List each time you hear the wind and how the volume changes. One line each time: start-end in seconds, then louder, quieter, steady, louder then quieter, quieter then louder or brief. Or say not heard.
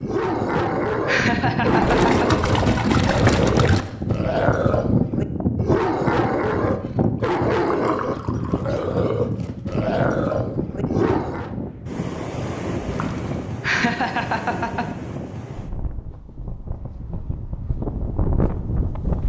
0.0-19.2 quieter.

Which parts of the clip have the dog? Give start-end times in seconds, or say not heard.
0.0-11.6.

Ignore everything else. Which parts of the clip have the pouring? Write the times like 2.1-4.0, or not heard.
1.8-3.9, 7.7-8.8, 12.8-13.5.